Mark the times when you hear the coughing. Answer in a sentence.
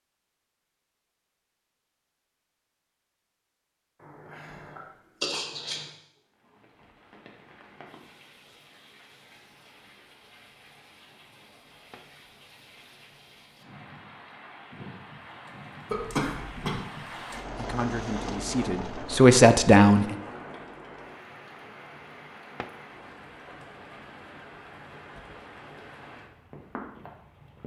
You can hear the coughing from 4.0 to 5.8 s and from 15.8 to 16.8 s.